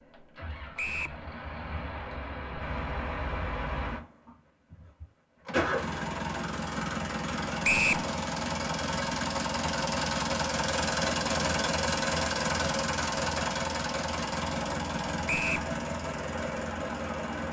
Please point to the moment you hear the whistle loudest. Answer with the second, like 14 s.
8 s.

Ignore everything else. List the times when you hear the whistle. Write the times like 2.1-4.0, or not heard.
0.8-1.2, 7.6-8.1, 15.2-15.7.